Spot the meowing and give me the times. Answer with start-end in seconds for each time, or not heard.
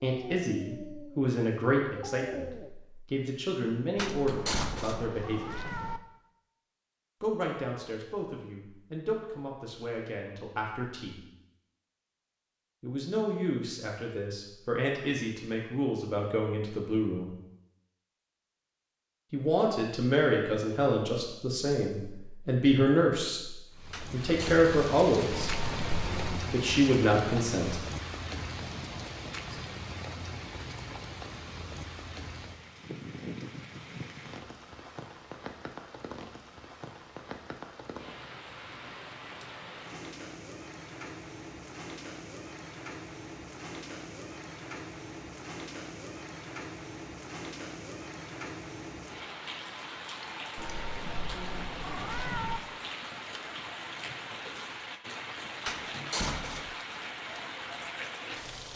4.2-6.0, 25.4-26.4, 50.5-52.6.